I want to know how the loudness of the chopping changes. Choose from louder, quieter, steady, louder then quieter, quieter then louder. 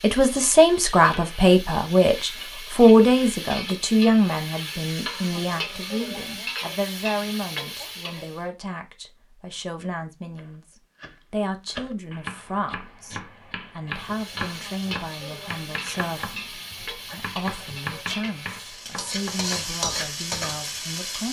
steady.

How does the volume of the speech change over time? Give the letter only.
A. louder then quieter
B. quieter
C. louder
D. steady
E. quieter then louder
B.